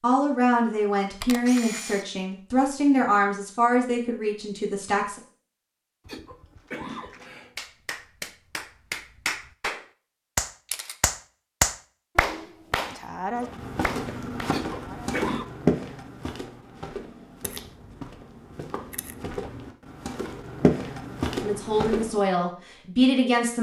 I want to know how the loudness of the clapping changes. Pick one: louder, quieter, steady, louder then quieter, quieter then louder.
louder then quieter.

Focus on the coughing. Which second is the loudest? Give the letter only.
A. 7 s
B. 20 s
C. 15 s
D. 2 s
C.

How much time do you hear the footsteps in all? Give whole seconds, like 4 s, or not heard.
9 s.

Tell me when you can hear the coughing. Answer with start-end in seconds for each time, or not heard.
6.0-7.6, 14.4-15.4.